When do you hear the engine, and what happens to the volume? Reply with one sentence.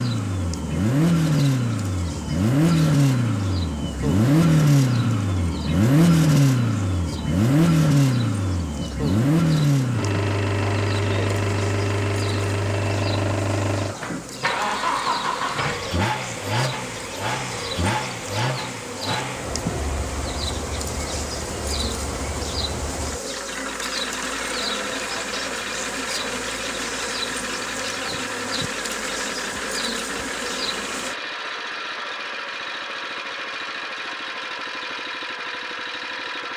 The engine can be heard from 0.0 to 36.5 s, getting quieter.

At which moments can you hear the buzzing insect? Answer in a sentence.
You can hear the buzzing insect from 0.0 to 31.1 s.